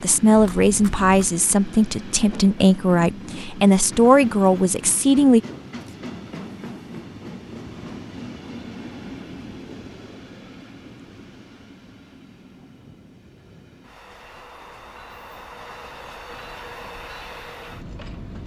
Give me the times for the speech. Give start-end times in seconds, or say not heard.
0.0-5.4.